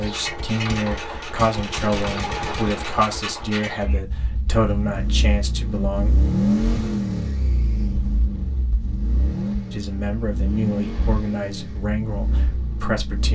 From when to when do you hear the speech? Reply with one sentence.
The speech can be heard from 0.0 to 6.1 s and from 9.7 to 13.3 s.